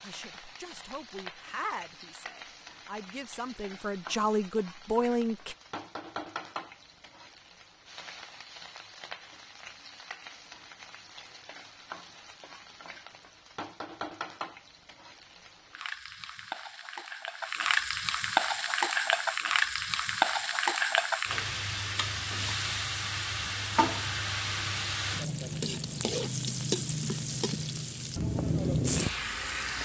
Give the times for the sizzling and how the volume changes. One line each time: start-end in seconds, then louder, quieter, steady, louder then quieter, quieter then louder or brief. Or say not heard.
0.0-29.8 louder.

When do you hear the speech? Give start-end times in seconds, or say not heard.
0.0-5.5.